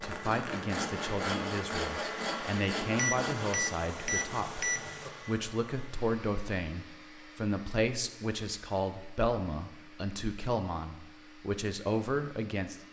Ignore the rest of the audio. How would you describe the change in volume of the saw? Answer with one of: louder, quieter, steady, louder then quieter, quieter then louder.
quieter.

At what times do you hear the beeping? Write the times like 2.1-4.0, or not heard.
3.0-5.1.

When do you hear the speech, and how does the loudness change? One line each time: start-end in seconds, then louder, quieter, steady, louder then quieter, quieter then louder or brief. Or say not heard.
0.0-12.8 steady.